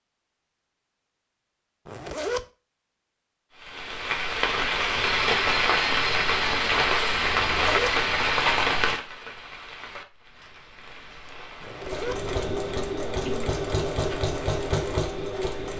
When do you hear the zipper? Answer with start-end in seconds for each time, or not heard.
1.9-2.5, 7.3-8.0, 11.6-12.2.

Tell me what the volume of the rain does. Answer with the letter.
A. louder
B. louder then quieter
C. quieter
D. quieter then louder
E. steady
C.